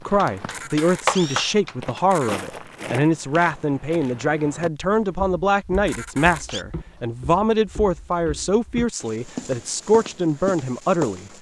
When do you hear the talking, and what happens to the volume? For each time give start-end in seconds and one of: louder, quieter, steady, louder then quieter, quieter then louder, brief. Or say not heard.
0.1-11.3 steady.